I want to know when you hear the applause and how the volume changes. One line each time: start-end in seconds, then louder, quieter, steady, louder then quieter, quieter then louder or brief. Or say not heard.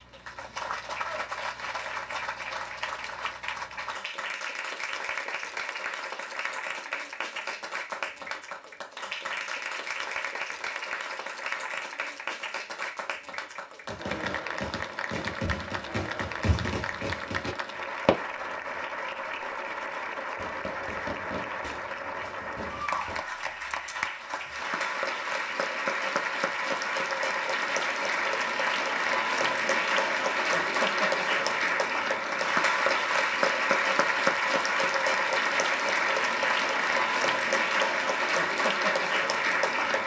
0.0-40.0 louder.